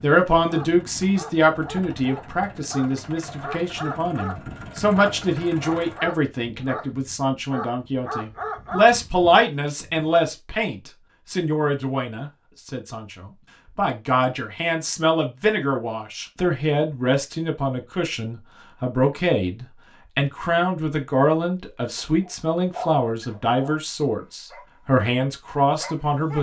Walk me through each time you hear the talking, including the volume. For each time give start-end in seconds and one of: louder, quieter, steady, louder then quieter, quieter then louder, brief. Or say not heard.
0.0-26.3 steady.